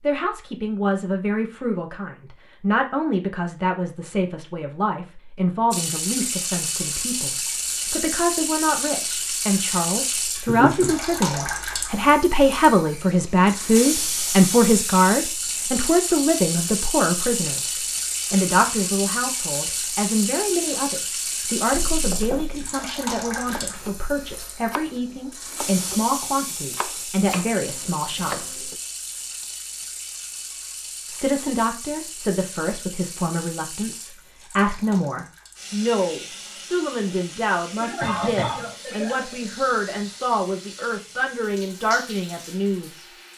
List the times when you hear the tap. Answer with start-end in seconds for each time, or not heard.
5.7-43.3.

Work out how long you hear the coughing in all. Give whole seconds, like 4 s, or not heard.
4 s.